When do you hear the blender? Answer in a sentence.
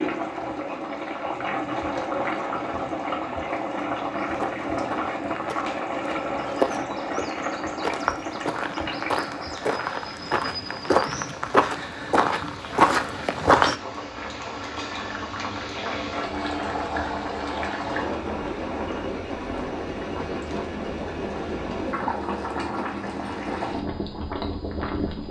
The blender can't be heard in this clip.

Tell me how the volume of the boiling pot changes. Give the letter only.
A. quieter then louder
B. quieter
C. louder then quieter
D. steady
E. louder
A.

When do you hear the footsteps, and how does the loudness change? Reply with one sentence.
You can hear the footsteps from 4.2 to 13.8 s, getting louder.